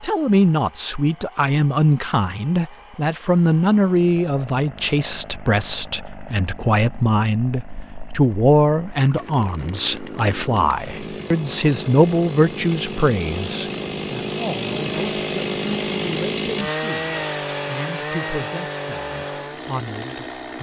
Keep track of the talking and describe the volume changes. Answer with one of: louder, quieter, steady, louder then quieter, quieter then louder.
quieter.